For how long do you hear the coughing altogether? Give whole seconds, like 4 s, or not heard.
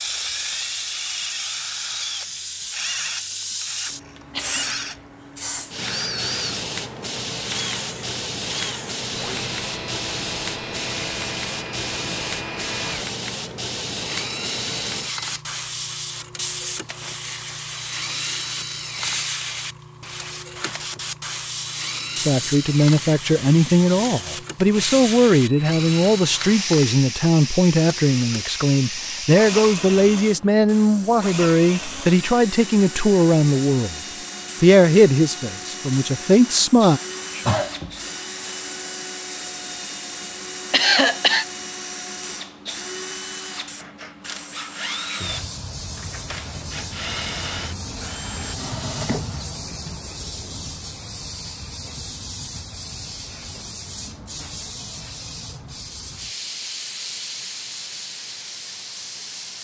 2 s.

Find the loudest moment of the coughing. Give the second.
41 s.